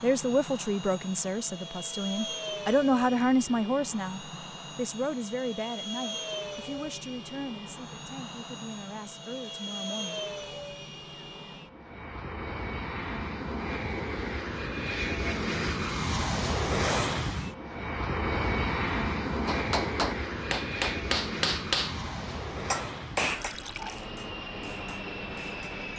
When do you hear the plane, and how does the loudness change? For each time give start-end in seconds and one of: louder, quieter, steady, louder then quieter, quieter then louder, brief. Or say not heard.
0.0-25.9 louder then quieter.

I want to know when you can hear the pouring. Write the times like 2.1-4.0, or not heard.
23.3-24.1.